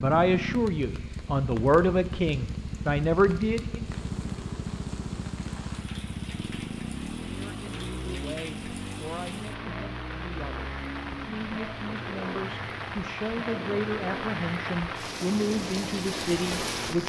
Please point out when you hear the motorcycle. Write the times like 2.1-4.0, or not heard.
0.0-17.0.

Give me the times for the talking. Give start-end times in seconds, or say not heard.
0.0-3.9, 7.3-17.0.